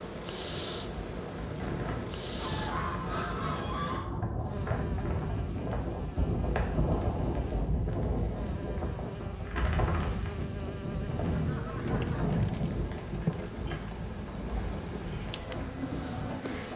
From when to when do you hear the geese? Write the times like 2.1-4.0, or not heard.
2.4-4.1, 10.8-12.8.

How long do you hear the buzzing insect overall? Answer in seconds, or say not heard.
17 s.